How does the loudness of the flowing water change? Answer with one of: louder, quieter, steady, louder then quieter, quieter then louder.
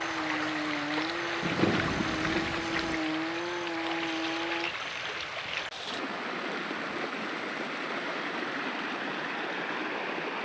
steady.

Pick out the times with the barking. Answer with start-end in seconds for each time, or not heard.
not heard.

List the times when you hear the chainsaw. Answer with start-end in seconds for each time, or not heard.
0.0-4.8.